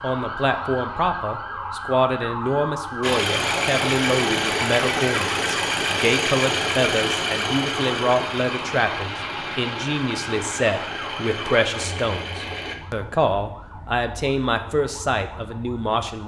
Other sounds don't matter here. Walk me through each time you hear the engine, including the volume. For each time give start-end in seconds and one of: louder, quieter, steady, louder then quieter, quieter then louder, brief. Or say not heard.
3.0-12.8 quieter.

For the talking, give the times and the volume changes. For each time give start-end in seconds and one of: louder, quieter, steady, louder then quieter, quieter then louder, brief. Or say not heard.
0.0-16.2 steady.